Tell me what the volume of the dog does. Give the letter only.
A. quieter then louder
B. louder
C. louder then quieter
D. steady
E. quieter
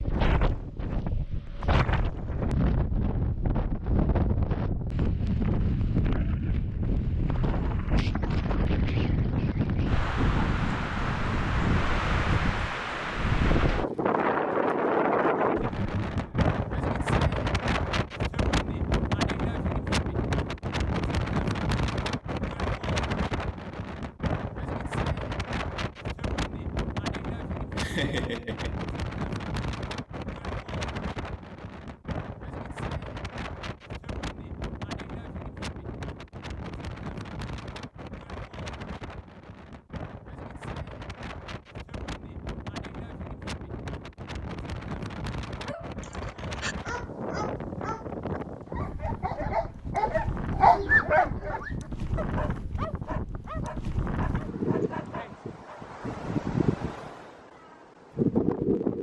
C.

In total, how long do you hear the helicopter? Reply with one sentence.
The helicopter can't be heard in this clip.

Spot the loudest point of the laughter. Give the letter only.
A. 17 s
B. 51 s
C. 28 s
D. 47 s
C.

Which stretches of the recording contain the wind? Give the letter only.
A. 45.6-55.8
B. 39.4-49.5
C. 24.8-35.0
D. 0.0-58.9
D.